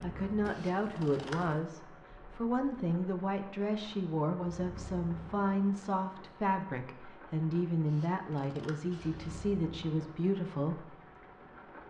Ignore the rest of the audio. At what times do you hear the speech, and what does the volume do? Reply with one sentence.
The speech can be heard from 0.0 to 10.8 s, at a steady volume.